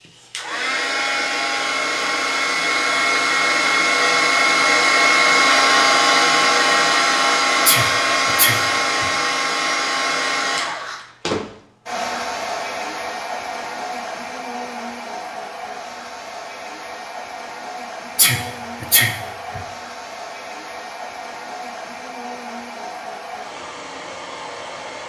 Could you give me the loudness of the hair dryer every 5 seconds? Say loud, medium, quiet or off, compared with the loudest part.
loud, loud, medium, quiet, quiet.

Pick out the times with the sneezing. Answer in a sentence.
You can hear the sneezing from 7.7 to 9.1 s and from 18.1 to 19.6 s.